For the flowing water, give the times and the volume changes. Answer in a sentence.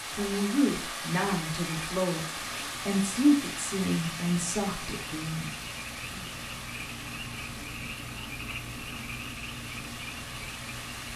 You can hear the flowing water from 0.0 to 11.1 s, getting quieter.